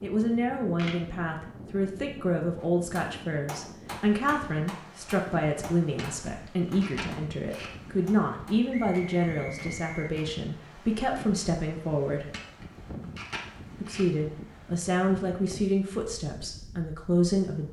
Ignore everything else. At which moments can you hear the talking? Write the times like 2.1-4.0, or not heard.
0.0-12.3, 13.8-17.6.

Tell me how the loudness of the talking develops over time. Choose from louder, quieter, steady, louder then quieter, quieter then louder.
steady.